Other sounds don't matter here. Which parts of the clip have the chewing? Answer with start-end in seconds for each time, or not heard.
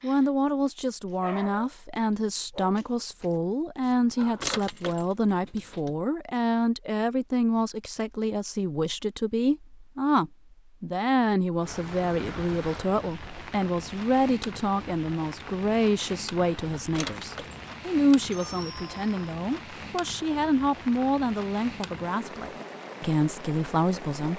not heard.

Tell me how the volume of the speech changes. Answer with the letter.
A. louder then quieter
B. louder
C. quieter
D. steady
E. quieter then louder
D.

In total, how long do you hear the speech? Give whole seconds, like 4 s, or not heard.
24 s.